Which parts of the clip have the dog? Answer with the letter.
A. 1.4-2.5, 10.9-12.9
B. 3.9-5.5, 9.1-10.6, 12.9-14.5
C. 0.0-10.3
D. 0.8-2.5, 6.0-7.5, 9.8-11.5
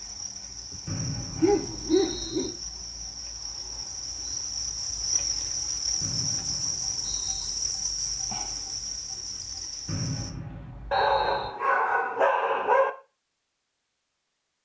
A.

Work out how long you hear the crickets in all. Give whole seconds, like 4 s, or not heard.
10 s.